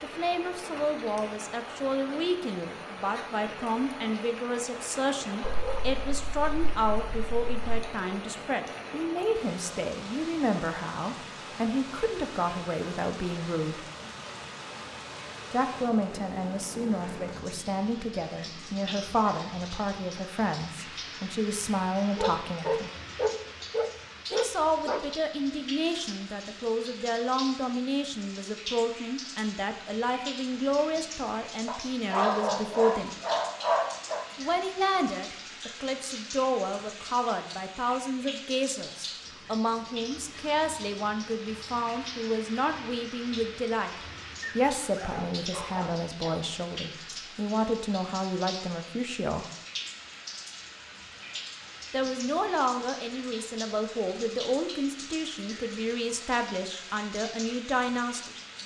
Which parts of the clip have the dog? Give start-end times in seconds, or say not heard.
5.4-7.9, 22.1-25.1, 31.6-34.2, 44.4-46.4.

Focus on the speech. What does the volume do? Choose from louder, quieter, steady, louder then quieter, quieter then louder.
steady.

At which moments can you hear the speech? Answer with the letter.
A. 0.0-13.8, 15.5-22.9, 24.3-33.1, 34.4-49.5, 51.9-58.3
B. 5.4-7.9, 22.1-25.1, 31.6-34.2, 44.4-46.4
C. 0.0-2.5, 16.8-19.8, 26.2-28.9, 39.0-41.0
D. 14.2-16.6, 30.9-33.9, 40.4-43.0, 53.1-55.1
A.